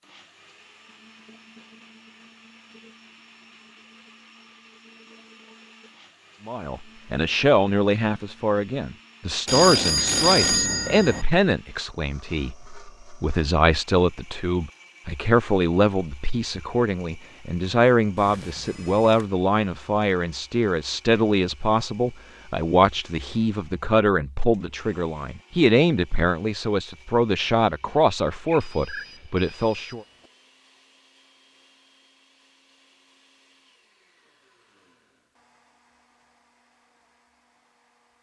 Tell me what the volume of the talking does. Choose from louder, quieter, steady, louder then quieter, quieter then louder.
steady.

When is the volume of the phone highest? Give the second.
10 s.